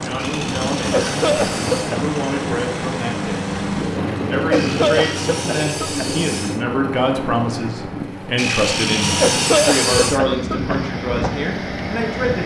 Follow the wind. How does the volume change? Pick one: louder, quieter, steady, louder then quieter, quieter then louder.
steady.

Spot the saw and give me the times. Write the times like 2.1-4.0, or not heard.
0.1-2.0, 4.5-6.7, 8.3-10.2.